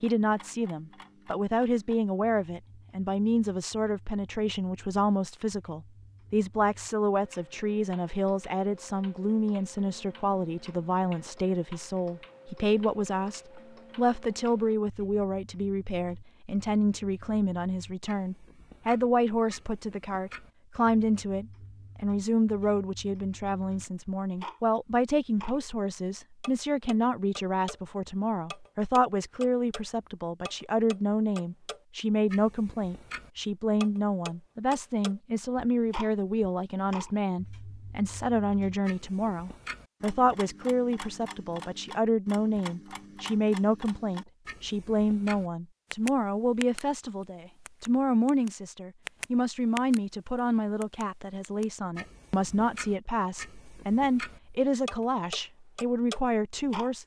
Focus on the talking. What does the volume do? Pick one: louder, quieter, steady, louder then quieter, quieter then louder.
steady.